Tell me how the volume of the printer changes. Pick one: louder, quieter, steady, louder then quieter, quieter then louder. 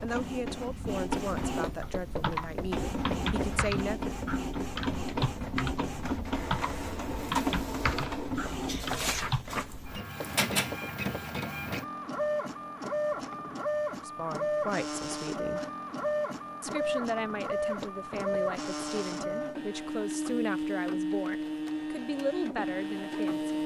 steady.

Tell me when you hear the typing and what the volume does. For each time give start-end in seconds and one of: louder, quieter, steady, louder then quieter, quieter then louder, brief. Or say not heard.
1.7-9.4 steady.